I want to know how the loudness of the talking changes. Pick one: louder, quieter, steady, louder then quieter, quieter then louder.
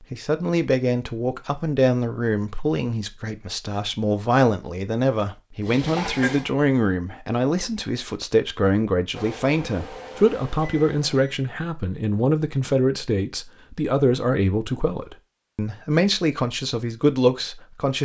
steady.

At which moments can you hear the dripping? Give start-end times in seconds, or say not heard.
not heard.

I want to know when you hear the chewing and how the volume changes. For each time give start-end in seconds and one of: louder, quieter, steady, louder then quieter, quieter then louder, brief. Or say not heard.
not heard.